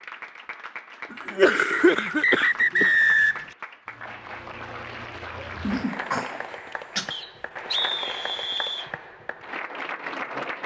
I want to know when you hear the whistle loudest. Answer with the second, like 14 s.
3 s.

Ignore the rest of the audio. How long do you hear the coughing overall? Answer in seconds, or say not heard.
3 s.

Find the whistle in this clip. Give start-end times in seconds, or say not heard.
1.7-3.5, 7.1-8.9.